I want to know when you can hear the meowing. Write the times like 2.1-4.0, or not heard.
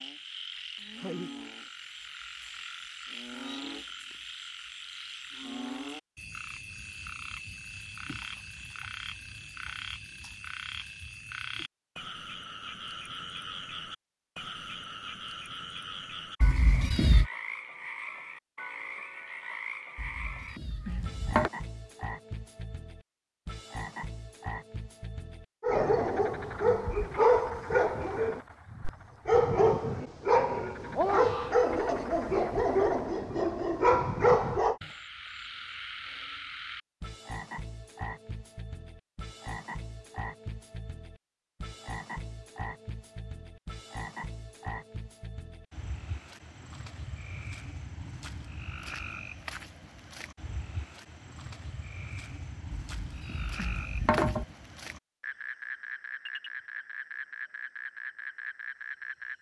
16.4-17.3, 19.9-21.5, 52.9-54.5.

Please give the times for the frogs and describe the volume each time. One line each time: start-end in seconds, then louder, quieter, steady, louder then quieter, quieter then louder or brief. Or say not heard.
0.0-59.3 steady.